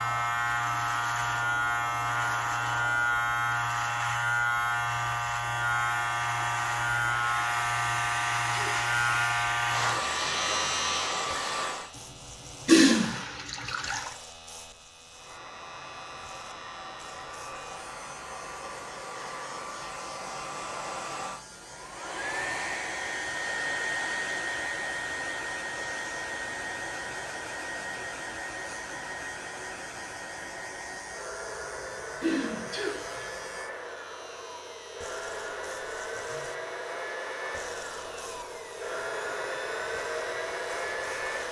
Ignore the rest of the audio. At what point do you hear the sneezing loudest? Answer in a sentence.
The loudest moment of the sneezing is at 33 seconds.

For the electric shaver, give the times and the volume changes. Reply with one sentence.
The electric shaver can be heard from 0.0 to 41.4 s, getting quieter.